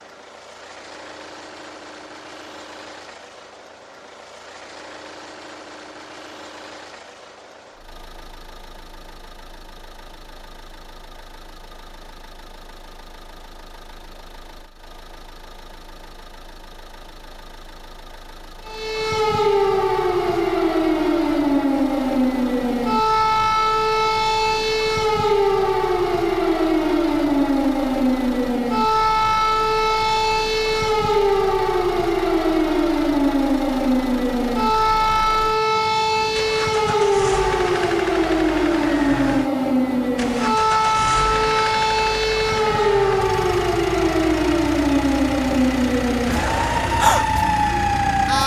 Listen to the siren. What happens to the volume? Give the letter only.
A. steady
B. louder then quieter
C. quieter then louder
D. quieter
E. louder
A.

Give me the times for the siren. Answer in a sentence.
You can hear the siren from 18.6 to 48.4 s.